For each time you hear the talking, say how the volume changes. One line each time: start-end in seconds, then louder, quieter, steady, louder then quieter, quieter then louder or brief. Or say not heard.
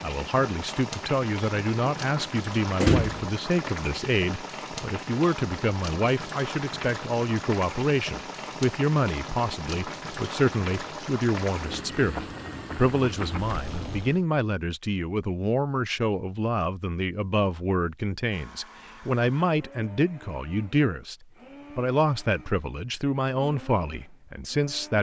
0.0-24.9 steady.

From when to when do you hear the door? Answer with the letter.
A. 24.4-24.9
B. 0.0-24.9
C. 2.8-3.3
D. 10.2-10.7
C.